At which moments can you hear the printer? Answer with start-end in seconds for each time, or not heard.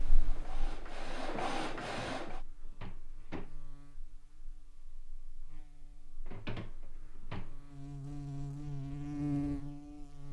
0.0-2.4.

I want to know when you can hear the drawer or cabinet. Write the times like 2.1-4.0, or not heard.
1.8-3.5, 6.2-7.7.